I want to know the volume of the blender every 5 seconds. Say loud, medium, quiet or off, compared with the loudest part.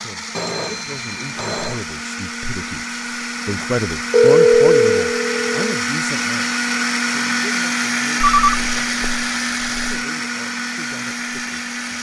medium, loud, medium.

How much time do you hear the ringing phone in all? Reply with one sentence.
You can hear the ringing phone for 5 seconds altogether.